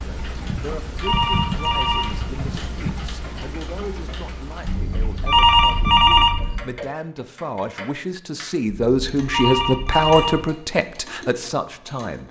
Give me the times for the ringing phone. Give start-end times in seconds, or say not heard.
0.6-2.3, 4.7-6.6, 8.7-10.4.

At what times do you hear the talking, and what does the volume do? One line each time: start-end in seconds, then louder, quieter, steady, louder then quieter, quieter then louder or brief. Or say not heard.
0.0-12.2 louder.